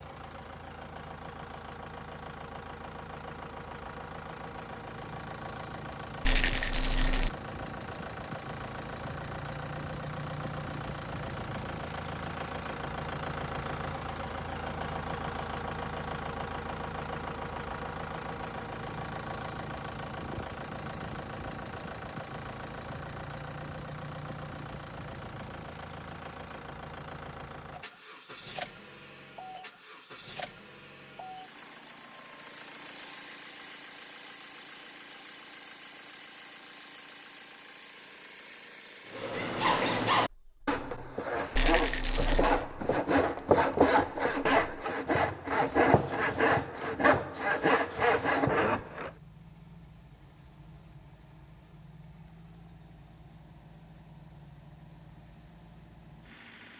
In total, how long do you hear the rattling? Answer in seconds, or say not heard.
2 s.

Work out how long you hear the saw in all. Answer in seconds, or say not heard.
10 s.